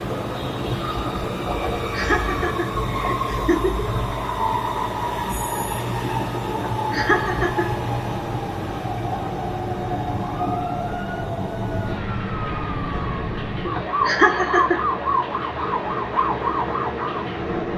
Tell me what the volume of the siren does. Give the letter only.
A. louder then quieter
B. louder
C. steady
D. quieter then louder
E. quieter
B.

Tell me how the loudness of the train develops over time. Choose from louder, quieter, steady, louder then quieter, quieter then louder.
quieter.